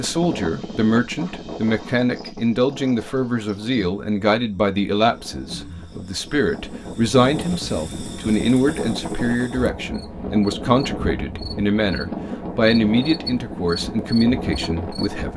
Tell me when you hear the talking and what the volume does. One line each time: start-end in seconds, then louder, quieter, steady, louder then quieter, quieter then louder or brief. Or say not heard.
0.0-15.3 steady.